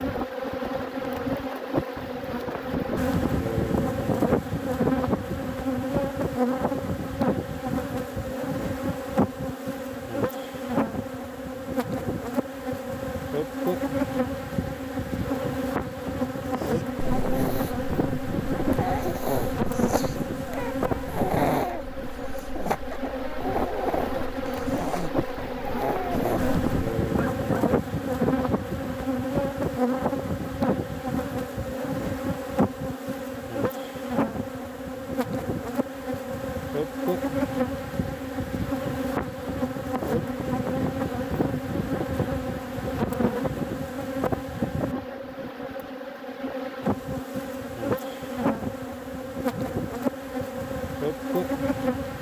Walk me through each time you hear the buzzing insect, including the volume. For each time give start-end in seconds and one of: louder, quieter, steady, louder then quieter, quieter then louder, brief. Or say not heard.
0.0-52.1 steady.